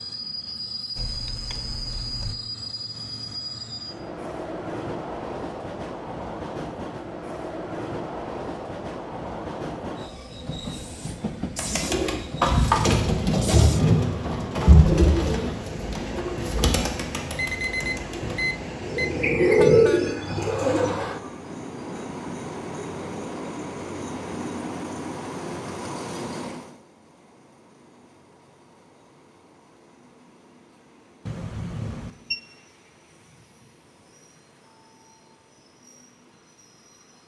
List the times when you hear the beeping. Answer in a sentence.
You can hear the beeping from 0.9 to 2.4 s, from 17.4 to 19.1 s and from 31.2 to 32.4 s.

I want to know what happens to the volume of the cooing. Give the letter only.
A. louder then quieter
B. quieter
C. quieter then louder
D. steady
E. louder
C.